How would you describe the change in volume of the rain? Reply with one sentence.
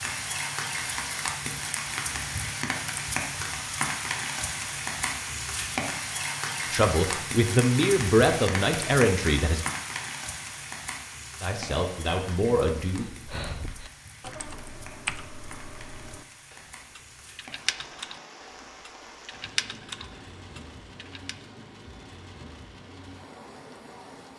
The volume of the rain goes down.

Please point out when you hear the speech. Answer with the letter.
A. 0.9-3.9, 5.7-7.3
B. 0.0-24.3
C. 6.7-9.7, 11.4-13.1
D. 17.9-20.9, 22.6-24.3
C.